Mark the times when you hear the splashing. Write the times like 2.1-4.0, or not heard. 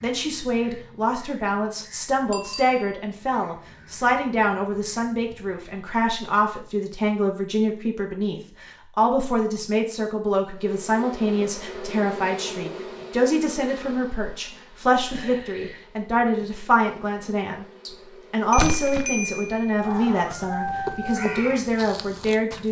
18.6-19.1.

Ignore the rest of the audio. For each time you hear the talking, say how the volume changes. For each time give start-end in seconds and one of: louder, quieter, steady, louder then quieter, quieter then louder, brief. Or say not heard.
0.0-22.6 steady.